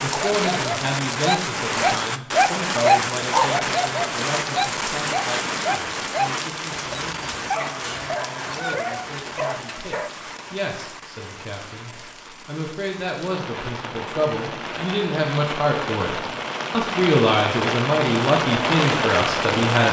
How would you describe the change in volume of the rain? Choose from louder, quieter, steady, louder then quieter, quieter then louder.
quieter then louder.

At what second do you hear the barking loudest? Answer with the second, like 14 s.
3 s.